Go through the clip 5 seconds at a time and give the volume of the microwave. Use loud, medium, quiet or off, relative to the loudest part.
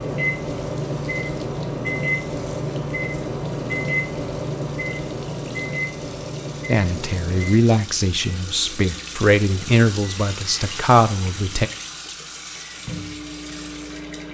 loud, medium, quiet.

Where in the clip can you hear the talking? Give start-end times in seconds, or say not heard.
6.7-11.7.